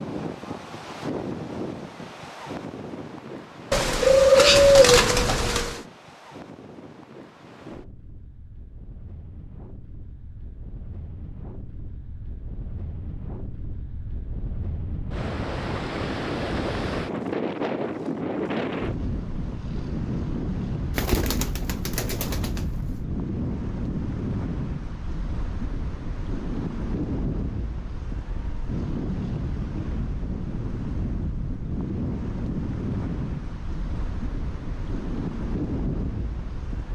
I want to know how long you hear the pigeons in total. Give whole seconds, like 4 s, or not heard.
4 s.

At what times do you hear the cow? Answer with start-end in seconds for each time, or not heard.
not heard.